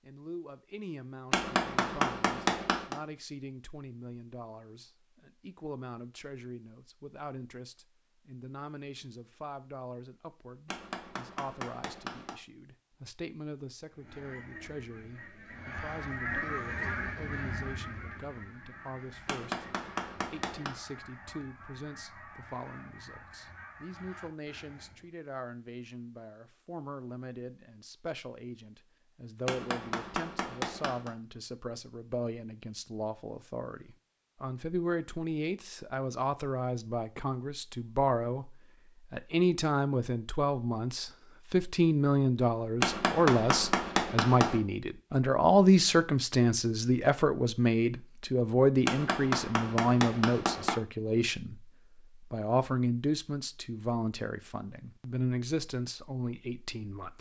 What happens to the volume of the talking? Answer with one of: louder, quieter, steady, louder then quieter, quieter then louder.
louder.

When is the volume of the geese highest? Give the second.
16 s.